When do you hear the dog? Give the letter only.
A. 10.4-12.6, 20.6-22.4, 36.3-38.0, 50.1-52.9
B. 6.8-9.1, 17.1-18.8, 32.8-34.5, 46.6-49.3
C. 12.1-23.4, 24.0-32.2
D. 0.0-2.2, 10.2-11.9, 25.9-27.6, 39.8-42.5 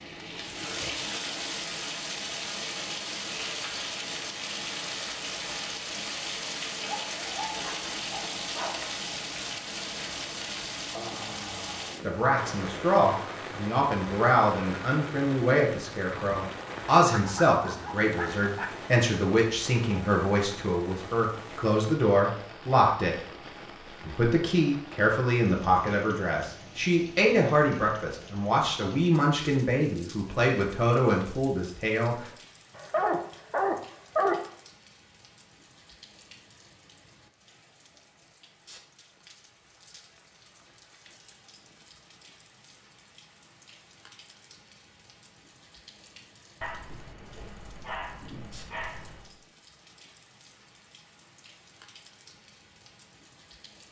B.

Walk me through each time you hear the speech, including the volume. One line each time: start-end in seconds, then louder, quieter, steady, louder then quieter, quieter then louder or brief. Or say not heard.
12.1-23.4 steady
24.0-32.2 steady.